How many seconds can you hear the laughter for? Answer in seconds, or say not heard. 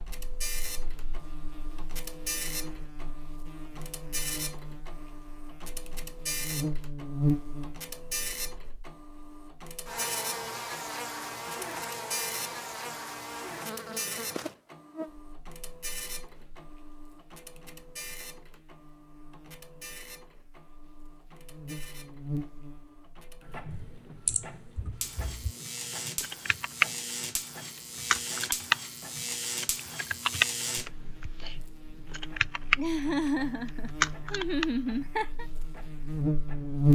3 s.